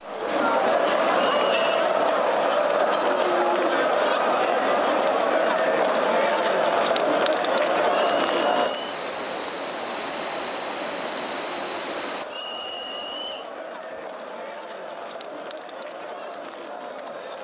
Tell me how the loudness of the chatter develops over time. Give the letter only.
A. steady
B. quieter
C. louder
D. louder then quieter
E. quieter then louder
B.